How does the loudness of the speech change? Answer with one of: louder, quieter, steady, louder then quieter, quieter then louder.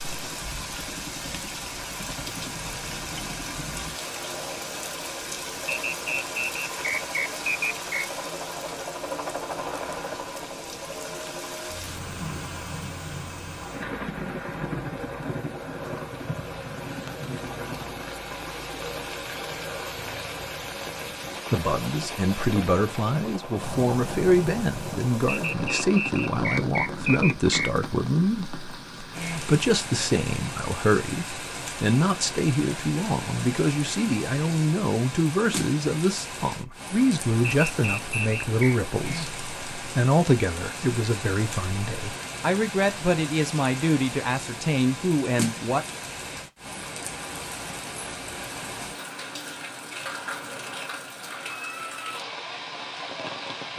steady.